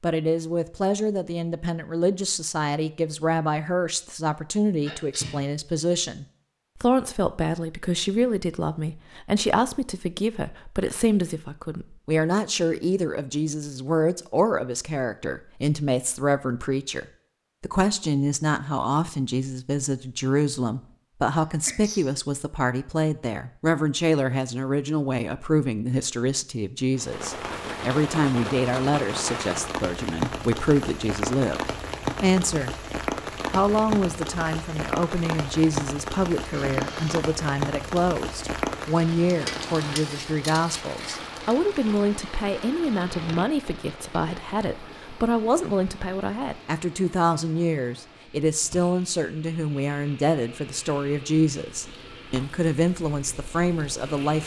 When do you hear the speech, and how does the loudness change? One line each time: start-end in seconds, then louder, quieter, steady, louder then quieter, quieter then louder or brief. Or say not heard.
0.0-32.8 steady
33.5-54.4 steady.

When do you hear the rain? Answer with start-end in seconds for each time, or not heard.
26.9-54.4.